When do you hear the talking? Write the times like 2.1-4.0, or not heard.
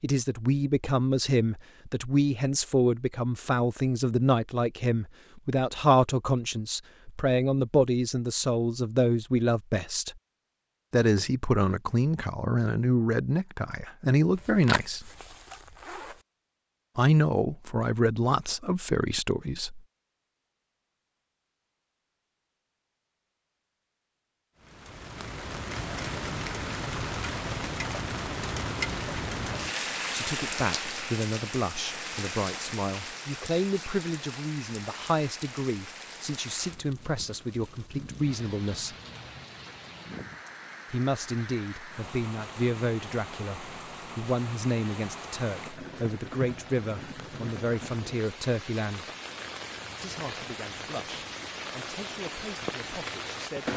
0.0-10.1, 10.9-15.1, 16.9-19.8, 30.1-39.0, 40.9-49.1, 50.0-53.7.